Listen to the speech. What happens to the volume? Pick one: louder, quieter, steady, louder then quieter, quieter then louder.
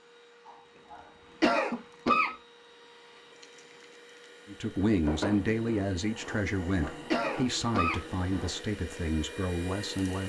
quieter.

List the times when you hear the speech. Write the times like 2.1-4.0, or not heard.
4.5-10.2.